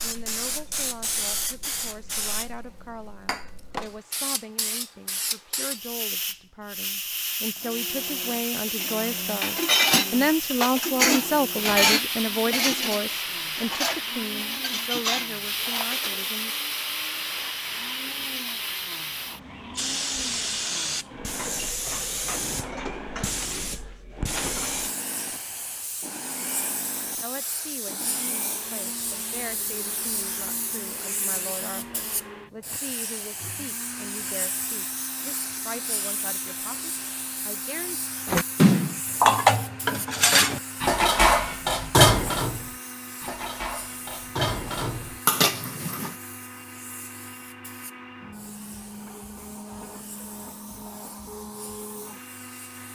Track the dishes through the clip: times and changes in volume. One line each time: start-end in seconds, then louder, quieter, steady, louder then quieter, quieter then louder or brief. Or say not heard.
8.7-16.2 quieter
38.2-46.1 quieter then louder.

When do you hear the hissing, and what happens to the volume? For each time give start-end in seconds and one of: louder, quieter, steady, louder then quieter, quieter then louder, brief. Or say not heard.
0.0-52.9 quieter.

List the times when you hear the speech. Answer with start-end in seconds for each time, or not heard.
0.0-16.6, 27.2-38.0.